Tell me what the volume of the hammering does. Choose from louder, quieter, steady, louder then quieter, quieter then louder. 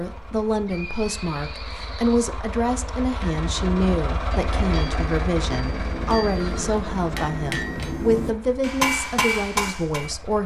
louder.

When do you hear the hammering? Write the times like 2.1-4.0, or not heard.
3.1-10.1.